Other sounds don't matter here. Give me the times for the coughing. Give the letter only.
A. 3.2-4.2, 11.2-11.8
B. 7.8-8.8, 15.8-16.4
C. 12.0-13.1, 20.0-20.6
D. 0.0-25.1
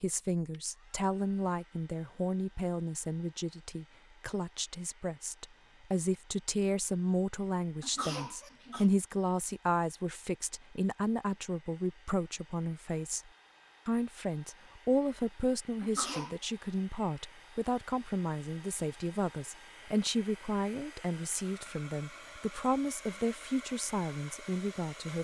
B.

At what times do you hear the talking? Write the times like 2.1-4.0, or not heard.
0.0-25.1.